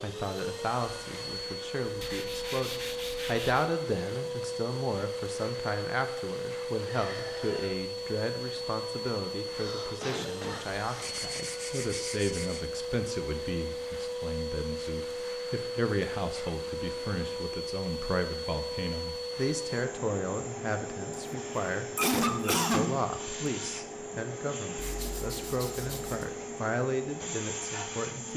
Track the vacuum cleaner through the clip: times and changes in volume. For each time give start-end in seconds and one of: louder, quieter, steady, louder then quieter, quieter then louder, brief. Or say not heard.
0.0-28.3 steady.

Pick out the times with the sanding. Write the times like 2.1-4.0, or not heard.
2.0-3.7, 11.0-12.7, 24.8-26.3.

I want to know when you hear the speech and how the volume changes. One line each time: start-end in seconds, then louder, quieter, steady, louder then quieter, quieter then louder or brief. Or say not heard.
0.0-28.3 steady.